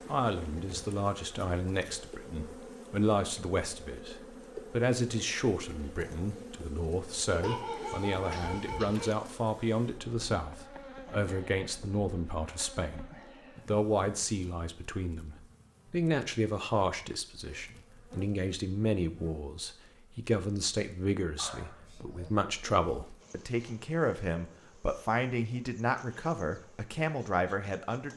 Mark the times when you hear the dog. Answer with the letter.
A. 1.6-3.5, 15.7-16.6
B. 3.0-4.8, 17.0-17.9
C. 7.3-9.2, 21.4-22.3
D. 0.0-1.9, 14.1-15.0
C.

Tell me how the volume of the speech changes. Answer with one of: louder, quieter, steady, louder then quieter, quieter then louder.
steady.